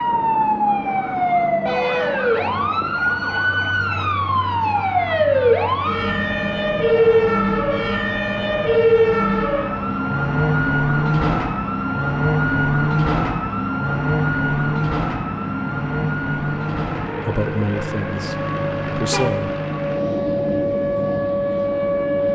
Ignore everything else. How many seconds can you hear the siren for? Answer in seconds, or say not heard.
22 s.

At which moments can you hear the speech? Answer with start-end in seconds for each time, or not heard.
17.2-19.6.